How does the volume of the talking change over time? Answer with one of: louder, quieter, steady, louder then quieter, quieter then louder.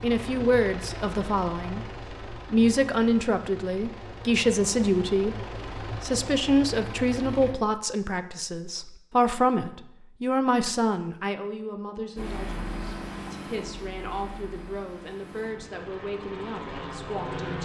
quieter.